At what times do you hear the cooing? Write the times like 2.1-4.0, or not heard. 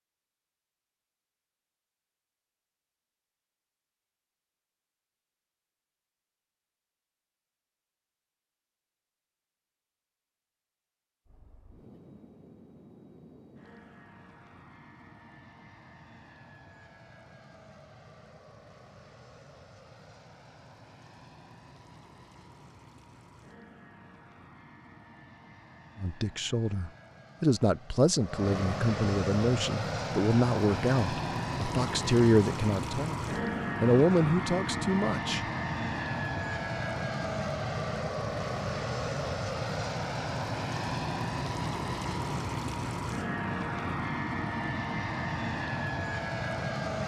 not heard.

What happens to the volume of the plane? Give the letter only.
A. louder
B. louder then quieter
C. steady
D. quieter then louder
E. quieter
A.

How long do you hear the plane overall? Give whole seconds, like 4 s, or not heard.
36 s.